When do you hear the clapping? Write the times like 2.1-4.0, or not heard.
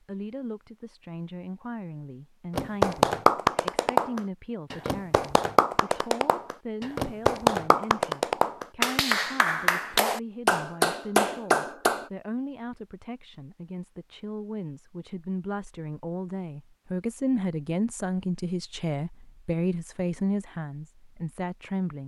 2.5-12.1.